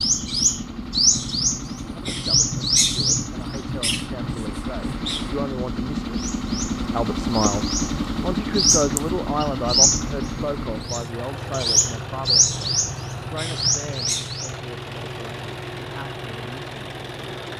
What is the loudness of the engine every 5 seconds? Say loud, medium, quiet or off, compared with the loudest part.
medium, loud, medium, medium.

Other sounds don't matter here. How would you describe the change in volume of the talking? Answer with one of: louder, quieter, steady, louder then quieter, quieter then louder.
louder then quieter.